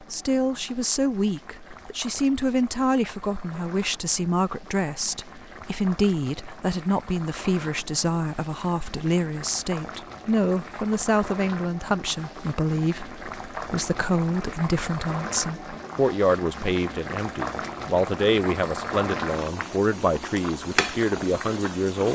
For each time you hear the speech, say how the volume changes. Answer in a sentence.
The speech can be heard from 0.0 to 22.0 s, at a steady volume.